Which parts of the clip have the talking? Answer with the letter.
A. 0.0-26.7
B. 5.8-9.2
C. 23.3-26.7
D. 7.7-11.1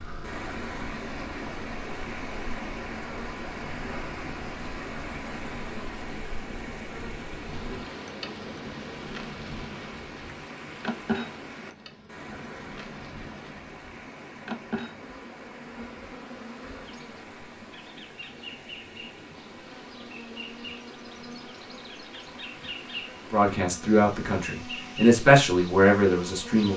C.